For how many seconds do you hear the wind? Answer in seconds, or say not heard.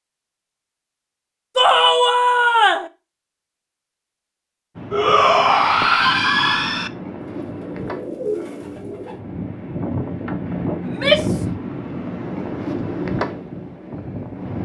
10 s.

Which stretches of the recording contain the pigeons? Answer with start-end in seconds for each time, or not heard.
7.4-9.2.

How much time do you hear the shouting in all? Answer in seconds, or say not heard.
4 s.